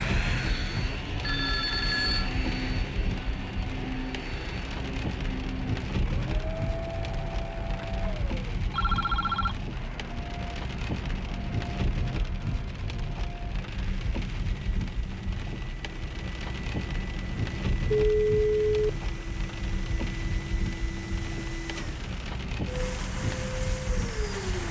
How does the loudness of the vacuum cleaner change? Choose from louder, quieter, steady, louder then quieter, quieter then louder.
quieter then louder.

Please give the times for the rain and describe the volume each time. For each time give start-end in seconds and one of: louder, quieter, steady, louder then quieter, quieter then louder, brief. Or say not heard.
0.0-24.6 steady.